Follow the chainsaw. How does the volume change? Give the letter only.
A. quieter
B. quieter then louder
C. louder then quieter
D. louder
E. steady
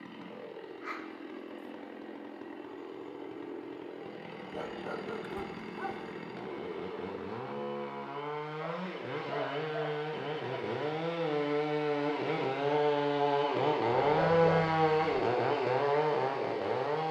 D.